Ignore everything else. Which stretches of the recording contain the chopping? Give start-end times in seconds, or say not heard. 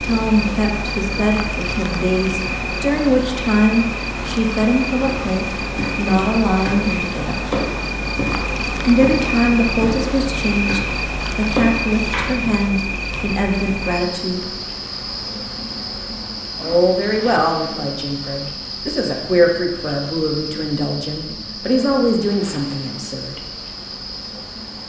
5.0-12.7.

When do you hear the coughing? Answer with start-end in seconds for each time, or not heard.
not heard.